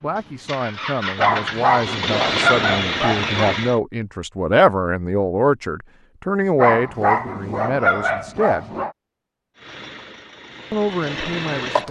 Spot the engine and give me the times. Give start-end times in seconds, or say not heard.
0.1-3.8, 9.6-11.8.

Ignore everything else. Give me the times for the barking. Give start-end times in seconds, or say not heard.
1.1-3.5, 6.5-8.9.